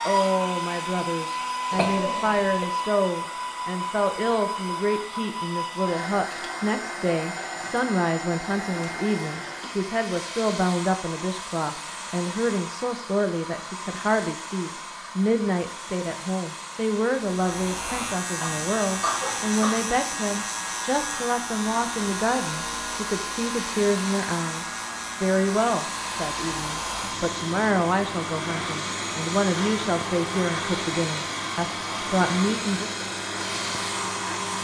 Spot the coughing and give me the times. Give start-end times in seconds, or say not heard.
1.7-2.7, 18.4-19.9.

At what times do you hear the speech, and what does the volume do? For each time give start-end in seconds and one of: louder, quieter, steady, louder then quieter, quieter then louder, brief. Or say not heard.
0.1-32.9 steady.